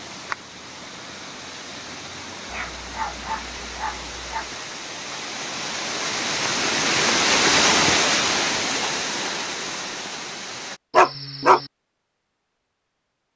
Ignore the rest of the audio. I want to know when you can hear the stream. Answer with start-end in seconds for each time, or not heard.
0.0-10.8.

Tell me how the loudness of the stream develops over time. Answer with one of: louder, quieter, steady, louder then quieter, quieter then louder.
louder then quieter.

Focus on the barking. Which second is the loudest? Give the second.
11 s.